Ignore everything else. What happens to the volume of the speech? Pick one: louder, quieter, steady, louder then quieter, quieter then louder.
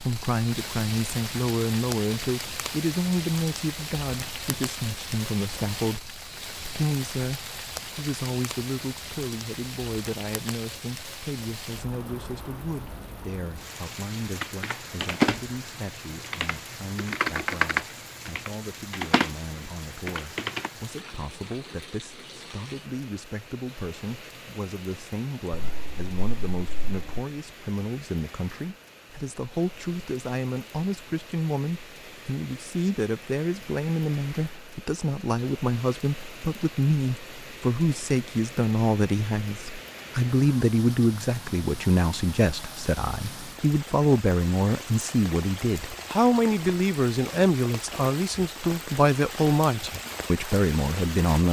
quieter then louder.